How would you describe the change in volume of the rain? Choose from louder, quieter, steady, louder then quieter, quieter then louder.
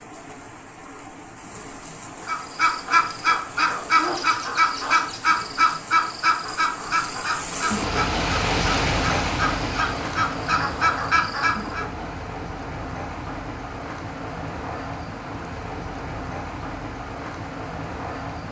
louder then quieter.